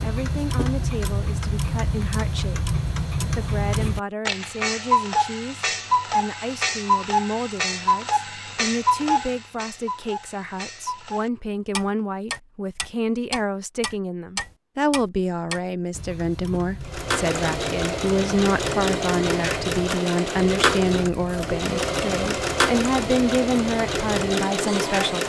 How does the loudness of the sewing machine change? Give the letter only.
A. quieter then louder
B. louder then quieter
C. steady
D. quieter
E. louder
C.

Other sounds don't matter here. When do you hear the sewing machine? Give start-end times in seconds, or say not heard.
16.8-25.2.